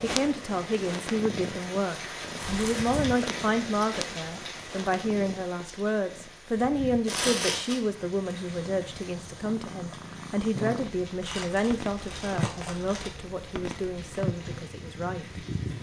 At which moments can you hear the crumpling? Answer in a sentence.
You can hear the crumpling from 2.4 to 2.9 s, from 7.0 to 7.8 s and from 11.2 to 13.1 s.